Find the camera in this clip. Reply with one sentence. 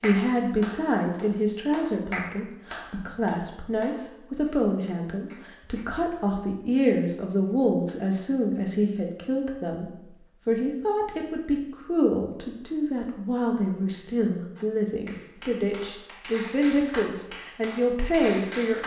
You can't hear the camera here.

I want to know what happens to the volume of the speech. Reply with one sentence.
The volume of the speech stays about the same.